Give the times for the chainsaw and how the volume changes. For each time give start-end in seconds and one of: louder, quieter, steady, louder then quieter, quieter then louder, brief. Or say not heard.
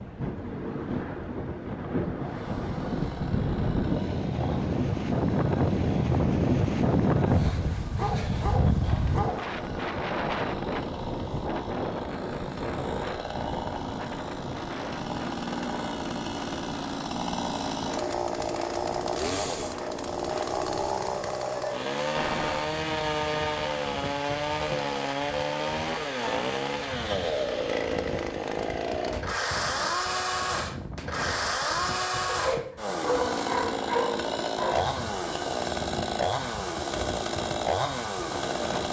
2.1-38.8 louder.